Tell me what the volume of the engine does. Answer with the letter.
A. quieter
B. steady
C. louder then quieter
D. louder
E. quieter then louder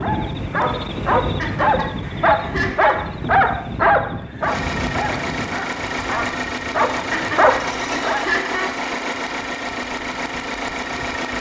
B.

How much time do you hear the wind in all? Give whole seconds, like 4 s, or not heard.
11 s.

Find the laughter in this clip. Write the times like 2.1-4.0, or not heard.
1.4-3.0, 7.1-8.8.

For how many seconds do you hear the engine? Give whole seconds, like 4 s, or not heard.
7 s.